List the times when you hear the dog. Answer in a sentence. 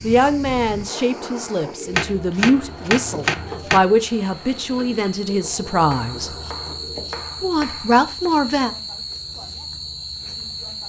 The dog can't be heard in this clip.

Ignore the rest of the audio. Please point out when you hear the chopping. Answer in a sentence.
You can hear the chopping from 1.9 to 3.9 s and from 5.9 to 8.3 s.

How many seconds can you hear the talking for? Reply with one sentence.
The talking can be heard for 8 seconds in total.